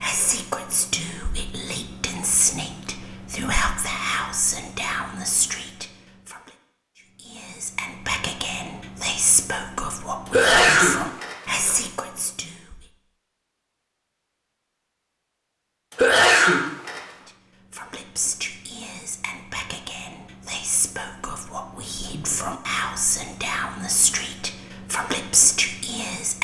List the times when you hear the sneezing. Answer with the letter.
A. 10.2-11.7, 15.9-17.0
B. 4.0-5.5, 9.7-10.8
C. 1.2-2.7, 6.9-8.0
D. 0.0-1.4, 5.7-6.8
A.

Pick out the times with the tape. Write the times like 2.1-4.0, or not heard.
not heard.